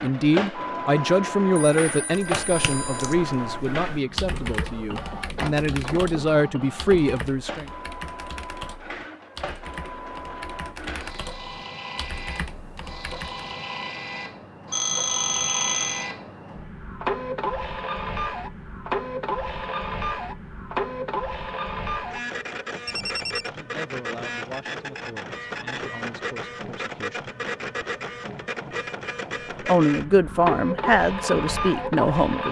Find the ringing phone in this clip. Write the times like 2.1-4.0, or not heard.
1.6-3.1, 14.7-16.1, 22.9-23.5.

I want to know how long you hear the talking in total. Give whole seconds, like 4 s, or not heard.
14 s.